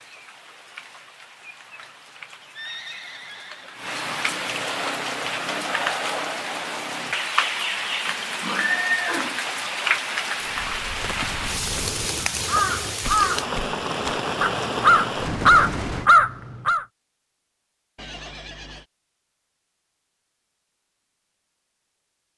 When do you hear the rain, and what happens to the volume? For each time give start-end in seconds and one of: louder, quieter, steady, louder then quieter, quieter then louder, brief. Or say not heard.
0.0-16.1 louder.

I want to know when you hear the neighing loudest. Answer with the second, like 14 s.
9 s.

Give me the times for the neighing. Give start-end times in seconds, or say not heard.
2.5-3.8, 8.1-9.4, 17.9-18.9.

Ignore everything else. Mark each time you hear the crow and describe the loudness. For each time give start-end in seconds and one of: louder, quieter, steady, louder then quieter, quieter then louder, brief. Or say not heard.
10.4-16.9 louder.